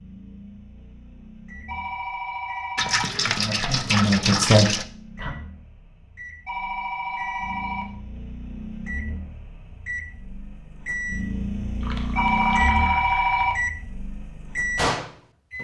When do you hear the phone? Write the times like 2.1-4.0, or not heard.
1.6-3.0, 6.5-7.8, 12.2-13.6.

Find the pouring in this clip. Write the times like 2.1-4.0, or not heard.
2.8-4.8, 11.8-13.5.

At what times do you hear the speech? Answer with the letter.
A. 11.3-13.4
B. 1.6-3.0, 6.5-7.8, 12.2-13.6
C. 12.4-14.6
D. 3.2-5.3
D.